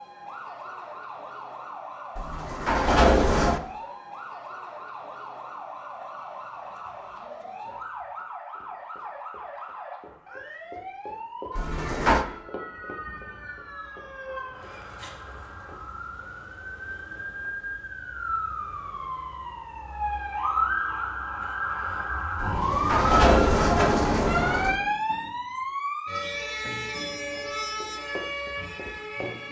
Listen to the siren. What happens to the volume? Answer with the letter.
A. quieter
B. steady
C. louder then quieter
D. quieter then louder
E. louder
E.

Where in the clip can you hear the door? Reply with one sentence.
You can hear the door from 2.1 to 3.6 s, from 11.6 to 12.2 s and from 22.4 to 24.8 s.